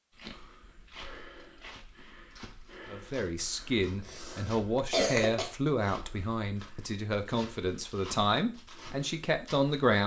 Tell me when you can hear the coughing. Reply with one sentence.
You can hear the coughing from 3.6 to 5.5 s.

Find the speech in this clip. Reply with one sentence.
The speech can be heard from 2.9 to 10.0 s.